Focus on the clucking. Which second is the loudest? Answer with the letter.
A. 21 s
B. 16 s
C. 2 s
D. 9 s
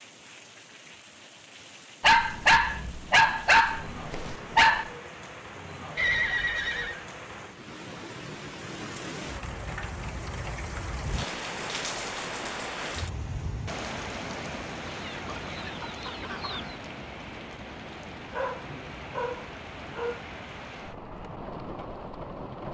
B.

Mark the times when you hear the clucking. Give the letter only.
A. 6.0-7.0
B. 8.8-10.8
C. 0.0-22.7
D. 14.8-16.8
D.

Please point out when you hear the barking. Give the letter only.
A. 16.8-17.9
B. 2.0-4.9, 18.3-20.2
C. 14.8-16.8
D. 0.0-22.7
B.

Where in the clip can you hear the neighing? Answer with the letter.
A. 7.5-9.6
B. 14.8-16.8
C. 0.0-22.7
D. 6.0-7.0
D.